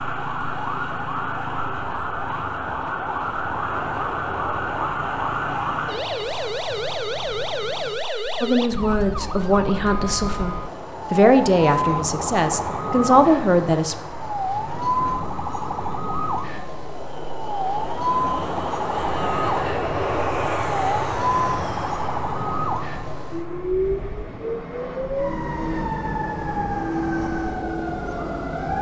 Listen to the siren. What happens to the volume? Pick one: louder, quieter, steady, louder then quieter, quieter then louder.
steady.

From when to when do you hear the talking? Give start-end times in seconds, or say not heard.
8.4-13.9.